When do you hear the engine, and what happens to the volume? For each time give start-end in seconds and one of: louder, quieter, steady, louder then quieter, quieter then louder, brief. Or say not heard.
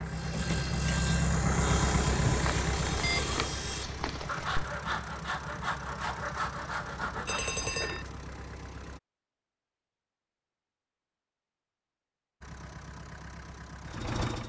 0.0-9.0 quieter
12.4-14.4 brief.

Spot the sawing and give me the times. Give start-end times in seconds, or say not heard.
0.1-7.7.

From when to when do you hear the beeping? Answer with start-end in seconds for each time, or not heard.
2.2-4.7, 7.2-8.1.